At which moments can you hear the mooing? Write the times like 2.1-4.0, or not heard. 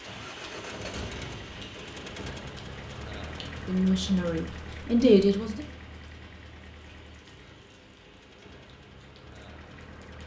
not heard.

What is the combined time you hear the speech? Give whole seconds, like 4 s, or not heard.
2 s.